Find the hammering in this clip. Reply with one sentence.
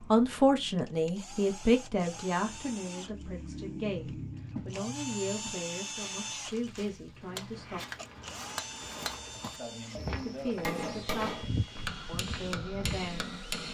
You can hear the hammering from 7.2 to 13.6 s.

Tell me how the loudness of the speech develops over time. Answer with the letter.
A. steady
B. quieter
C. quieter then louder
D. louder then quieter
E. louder
B.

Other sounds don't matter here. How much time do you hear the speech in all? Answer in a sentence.
The speech can be heard for 11 seconds in total.